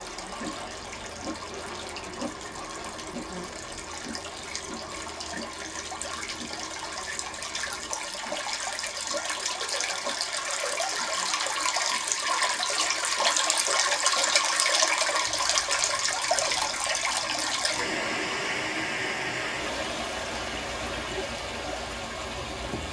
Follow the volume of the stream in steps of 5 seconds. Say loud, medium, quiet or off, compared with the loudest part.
quiet, medium, loud, loud, medium.